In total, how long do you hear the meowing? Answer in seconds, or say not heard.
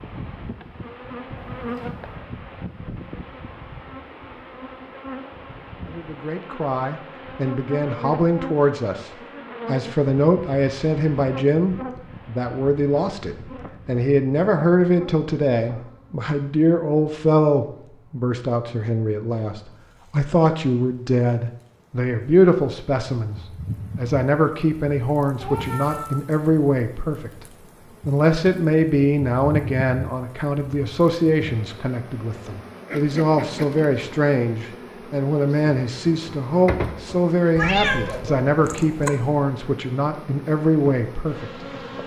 3 s.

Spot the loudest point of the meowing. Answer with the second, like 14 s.
38 s.